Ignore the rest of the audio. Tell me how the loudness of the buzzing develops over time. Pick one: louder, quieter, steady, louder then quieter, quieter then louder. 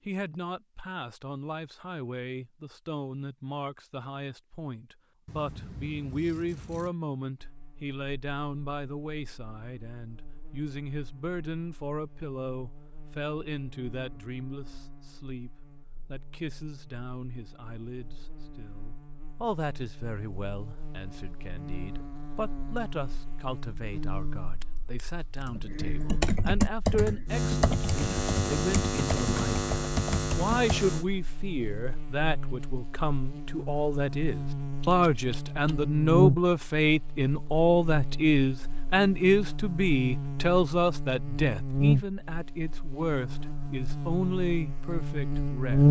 louder.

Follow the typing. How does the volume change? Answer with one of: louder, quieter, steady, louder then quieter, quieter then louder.
quieter.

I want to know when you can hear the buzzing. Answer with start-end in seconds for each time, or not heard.
7.3-45.8.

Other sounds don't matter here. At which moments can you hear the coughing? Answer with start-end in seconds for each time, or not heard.
not heard.